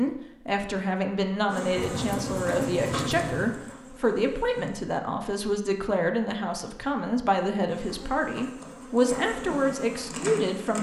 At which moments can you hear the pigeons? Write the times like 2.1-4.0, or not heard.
1.8-3.5.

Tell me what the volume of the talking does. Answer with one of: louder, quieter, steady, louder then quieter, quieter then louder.
steady.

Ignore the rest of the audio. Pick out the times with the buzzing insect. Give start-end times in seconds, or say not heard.
1.4-4.8, 7.7-10.7.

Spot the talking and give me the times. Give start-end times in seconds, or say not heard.
0.0-10.7.